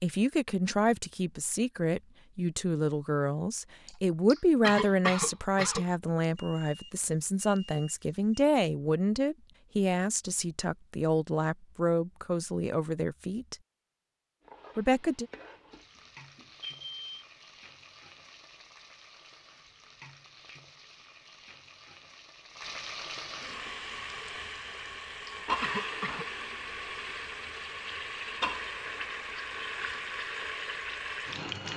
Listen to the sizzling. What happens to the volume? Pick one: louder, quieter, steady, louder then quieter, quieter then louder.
louder.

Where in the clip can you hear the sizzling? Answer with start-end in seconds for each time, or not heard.
14.4-31.7.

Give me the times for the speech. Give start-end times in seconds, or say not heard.
0.0-13.6, 14.8-15.2.